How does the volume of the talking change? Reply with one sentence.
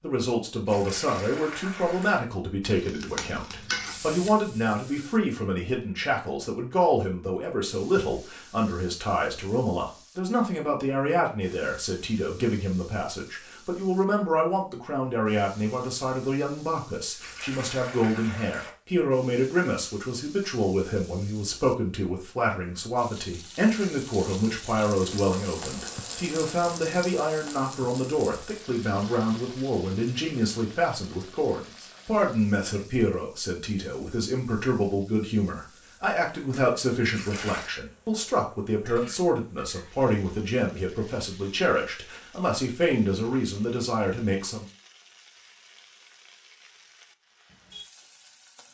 The loudness of the talking stays about the same.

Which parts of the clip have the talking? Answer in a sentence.
You can hear the talking from 0.0 to 44.6 s.